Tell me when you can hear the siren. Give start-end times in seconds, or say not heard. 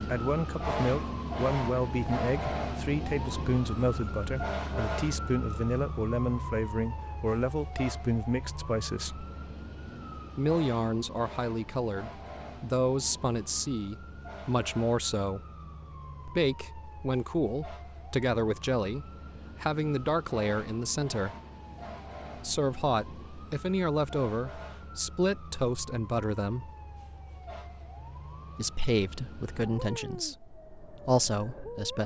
0.0-32.0.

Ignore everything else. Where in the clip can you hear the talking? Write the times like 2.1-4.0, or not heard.
0.0-9.2, 10.3-15.4, 16.2-21.3, 22.4-26.7, 28.6-32.0.